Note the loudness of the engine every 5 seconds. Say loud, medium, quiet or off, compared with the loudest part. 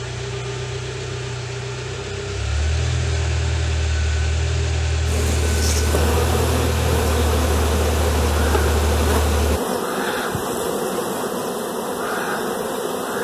loud, loud, off.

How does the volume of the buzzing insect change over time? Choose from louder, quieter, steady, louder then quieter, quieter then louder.
steady.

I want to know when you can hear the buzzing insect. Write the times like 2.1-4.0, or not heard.
5.0-13.1.